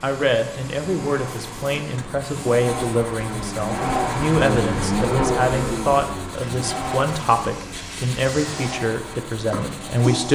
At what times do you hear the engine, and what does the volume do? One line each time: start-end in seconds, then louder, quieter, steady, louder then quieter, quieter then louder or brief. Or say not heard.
0.1-10.3 louder then quieter.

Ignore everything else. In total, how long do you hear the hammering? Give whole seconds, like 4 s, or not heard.
not heard.